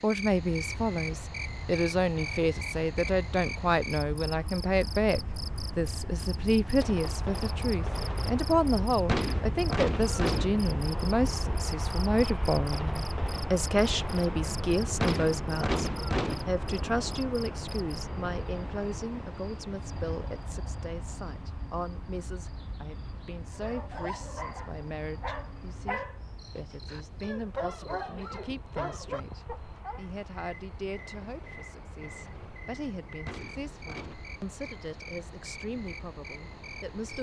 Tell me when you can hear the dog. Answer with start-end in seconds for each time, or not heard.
23.5-30.0.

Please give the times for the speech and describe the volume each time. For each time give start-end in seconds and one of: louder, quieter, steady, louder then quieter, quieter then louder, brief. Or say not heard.
0.0-37.1 quieter.